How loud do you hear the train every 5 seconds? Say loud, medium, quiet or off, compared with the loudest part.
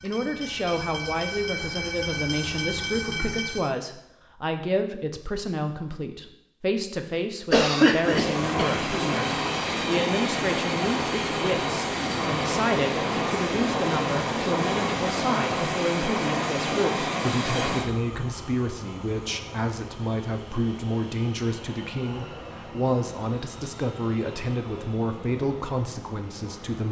medium, loud, loud, loud, quiet, quiet.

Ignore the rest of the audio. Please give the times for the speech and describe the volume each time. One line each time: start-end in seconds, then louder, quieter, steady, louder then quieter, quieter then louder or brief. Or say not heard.
0.0-26.8 steady.